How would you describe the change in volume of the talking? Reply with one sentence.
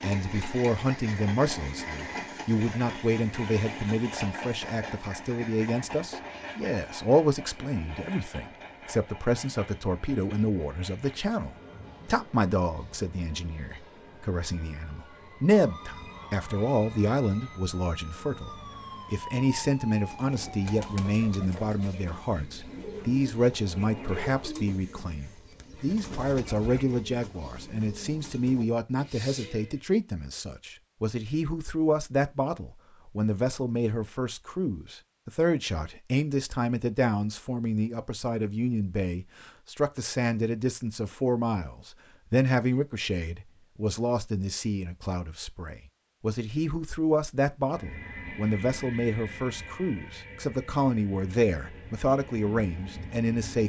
The volume of the talking stays about the same.